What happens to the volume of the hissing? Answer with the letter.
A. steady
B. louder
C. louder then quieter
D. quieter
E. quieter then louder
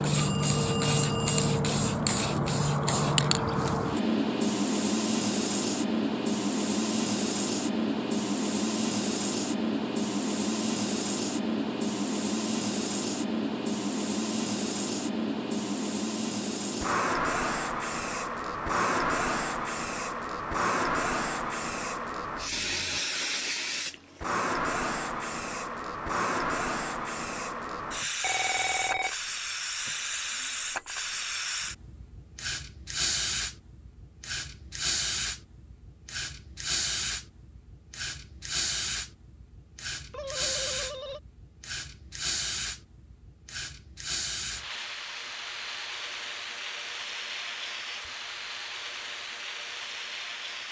D.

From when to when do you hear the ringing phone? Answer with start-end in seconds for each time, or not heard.
0.1-1.4, 28.2-29.1, 40.1-41.2.